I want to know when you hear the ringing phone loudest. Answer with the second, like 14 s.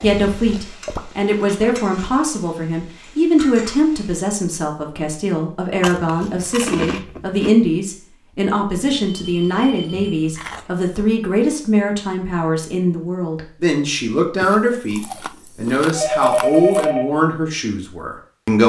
17 s.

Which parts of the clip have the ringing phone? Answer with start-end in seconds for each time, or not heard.
0.0-0.6, 8.9-10.6, 15.9-17.1.